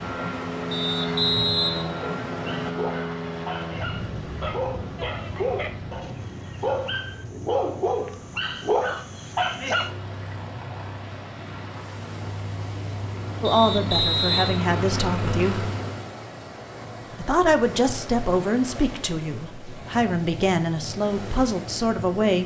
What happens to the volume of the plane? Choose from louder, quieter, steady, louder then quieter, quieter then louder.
quieter then louder.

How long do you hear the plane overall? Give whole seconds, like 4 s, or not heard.
16 s.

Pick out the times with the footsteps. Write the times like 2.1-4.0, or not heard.
not heard.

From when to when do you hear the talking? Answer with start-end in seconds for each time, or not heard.
13.4-15.7, 17.1-22.4.